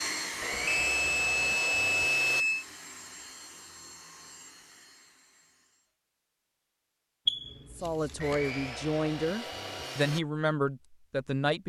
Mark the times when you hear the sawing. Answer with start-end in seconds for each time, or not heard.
0.4-2.5, 8.2-10.2.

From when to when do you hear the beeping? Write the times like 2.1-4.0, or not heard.
0.7-2.6, 7.2-8.3.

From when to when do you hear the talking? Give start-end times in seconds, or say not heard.
7.8-11.6.